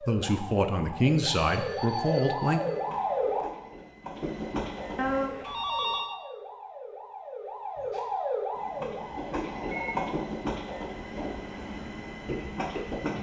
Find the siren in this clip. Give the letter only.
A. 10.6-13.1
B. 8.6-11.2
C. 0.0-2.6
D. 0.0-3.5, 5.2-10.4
D.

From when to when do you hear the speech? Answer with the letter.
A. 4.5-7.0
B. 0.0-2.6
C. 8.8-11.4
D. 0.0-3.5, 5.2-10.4
B.